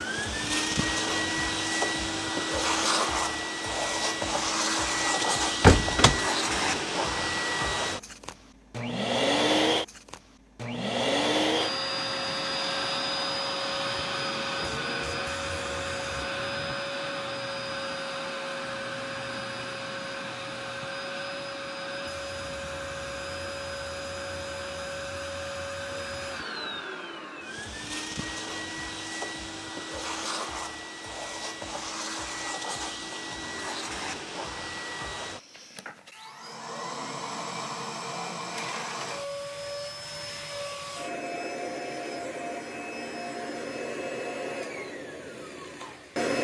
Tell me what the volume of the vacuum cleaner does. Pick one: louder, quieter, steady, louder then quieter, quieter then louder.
quieter.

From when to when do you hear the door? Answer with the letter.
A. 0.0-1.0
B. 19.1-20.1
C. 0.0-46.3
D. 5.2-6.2
D.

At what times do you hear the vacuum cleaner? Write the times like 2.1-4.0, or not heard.
0.0-46.3.